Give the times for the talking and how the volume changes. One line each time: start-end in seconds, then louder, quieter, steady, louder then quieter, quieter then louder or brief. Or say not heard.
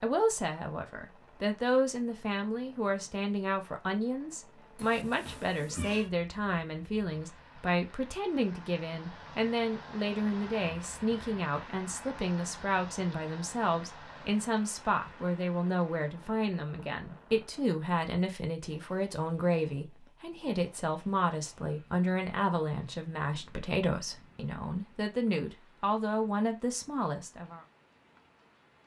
0.0-27.6 steady.